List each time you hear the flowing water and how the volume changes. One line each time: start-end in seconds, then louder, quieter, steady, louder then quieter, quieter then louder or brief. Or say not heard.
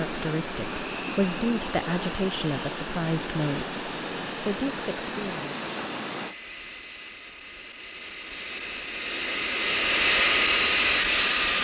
0.0-6.3 steady.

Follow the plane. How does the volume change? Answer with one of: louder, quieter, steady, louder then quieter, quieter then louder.
louder.